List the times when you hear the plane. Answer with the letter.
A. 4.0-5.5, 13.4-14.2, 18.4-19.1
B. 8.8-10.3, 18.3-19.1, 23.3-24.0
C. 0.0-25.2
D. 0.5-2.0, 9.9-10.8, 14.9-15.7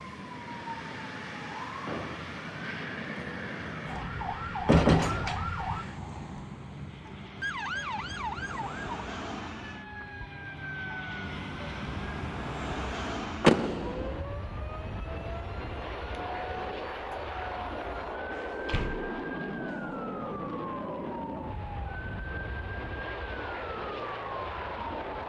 C.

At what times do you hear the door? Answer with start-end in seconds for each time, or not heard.
4.0-5.5, 13.4-14.2, 18.4-19.1.